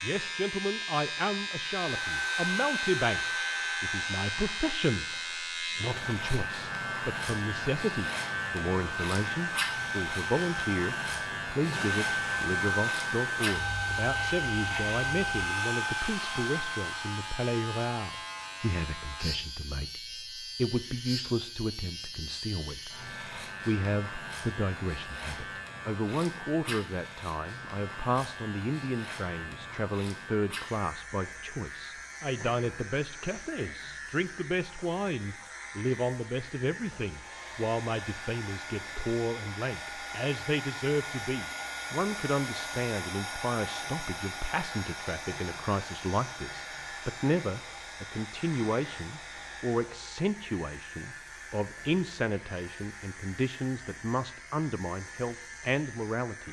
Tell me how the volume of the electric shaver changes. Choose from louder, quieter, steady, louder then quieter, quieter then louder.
quieter.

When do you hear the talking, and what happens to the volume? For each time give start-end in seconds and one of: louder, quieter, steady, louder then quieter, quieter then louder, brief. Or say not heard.
0.0-56.4 steady.